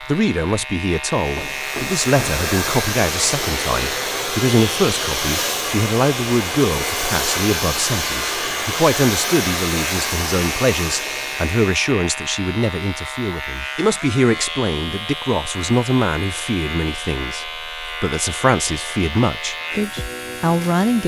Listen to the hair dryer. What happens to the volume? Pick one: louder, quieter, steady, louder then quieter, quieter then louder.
steady.